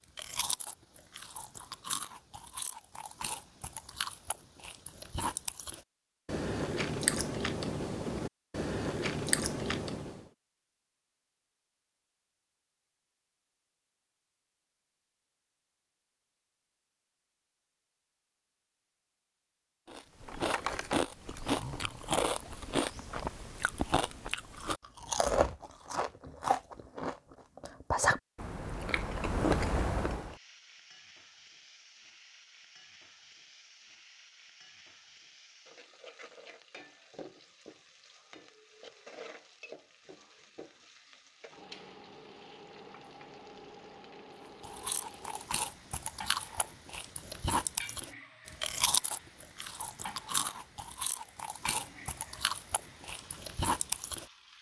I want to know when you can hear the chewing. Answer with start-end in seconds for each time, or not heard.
0.0-10.2, 19.9-30.4, 44.6-54.2.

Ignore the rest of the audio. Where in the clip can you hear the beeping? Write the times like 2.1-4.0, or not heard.
not heard.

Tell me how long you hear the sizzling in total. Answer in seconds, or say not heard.
24 s.